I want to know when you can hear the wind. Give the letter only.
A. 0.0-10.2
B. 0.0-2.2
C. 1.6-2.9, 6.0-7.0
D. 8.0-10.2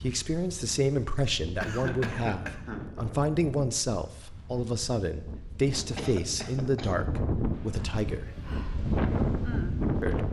A.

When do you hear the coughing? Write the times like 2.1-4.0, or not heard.
1.6-2.9, 6.0-7.0.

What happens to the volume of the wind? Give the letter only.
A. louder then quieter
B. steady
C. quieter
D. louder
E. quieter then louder
D.